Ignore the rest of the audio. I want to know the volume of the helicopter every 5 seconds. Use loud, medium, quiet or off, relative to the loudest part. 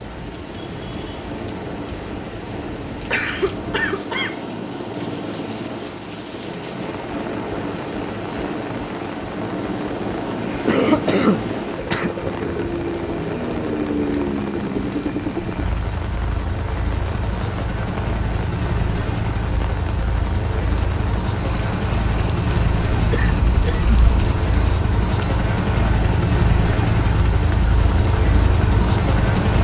medium, medium, loud, medium, loud, loud.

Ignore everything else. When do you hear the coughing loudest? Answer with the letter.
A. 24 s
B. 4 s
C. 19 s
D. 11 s
D.